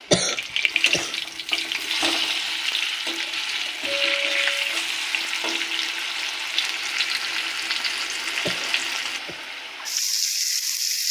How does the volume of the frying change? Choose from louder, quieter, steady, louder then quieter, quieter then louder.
steady.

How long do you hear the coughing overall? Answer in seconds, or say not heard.
2 s.